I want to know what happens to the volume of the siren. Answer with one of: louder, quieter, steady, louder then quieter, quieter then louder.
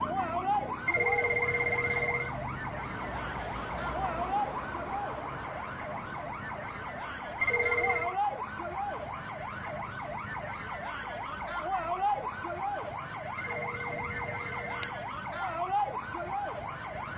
steady.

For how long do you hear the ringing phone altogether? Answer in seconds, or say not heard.
4 s.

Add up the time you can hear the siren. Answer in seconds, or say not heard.
17 s.